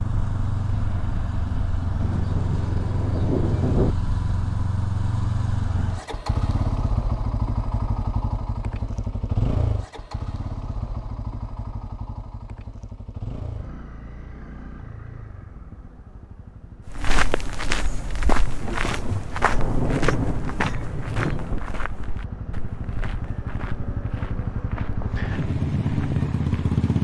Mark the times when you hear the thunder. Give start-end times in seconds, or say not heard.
2.0-4.0, 18.6-21.6.